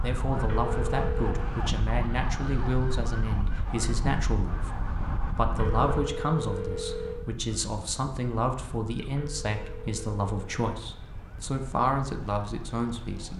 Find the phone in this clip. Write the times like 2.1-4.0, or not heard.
0.5-1.5, 5.5-7.2, 9.1-10.4.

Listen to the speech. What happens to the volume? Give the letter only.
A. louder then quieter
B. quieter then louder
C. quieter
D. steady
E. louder
D.